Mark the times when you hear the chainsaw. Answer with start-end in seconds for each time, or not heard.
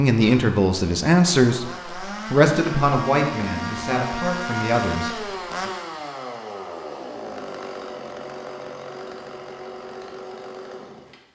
0.1-11.2.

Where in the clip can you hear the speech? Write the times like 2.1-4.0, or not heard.
0.0-1.6, 2.3-5.2.